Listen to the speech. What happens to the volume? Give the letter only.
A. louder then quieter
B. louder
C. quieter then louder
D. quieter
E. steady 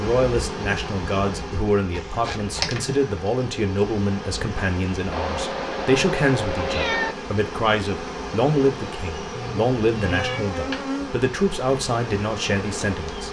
E.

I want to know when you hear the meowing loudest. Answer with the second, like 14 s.
7 s.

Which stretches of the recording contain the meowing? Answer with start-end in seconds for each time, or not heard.
1.9-2.8, 5.1-7.2, 9.3-10.4.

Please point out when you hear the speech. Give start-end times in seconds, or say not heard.
0.0-13.2.